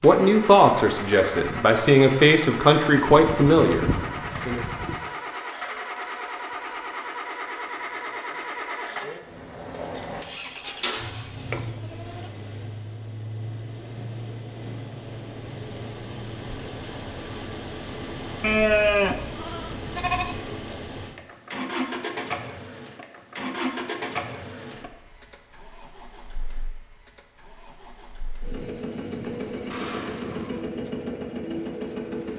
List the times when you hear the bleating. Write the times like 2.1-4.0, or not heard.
3.1-5.0, 10.6-12.2, 18.4-20.4, 29.4-30.6.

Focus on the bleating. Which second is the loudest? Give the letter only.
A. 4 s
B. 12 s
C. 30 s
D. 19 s
D.